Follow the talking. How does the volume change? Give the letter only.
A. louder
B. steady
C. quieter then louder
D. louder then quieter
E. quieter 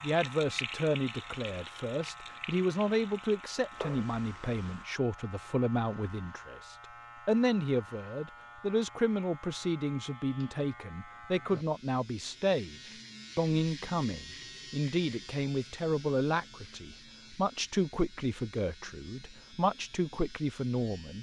B.